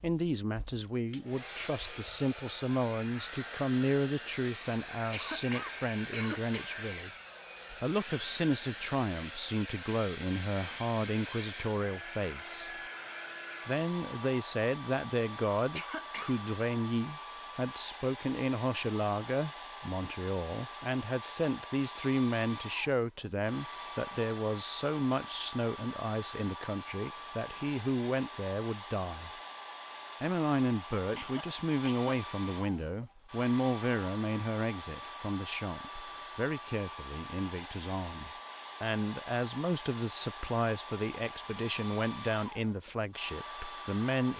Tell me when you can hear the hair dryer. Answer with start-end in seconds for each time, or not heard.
0.0-44.3.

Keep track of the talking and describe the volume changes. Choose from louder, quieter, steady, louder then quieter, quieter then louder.
steady.